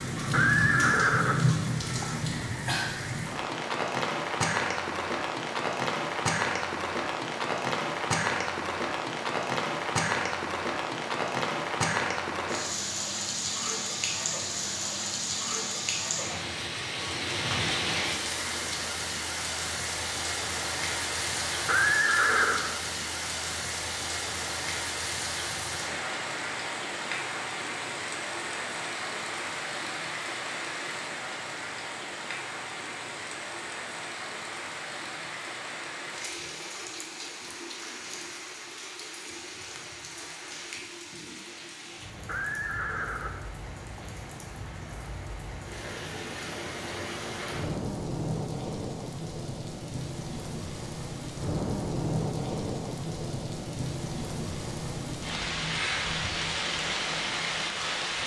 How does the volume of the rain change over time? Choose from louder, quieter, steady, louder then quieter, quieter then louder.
quieter then louder.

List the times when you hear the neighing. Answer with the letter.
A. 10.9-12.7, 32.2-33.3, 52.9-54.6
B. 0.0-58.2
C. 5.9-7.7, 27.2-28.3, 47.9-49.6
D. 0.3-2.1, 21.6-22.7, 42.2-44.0
D.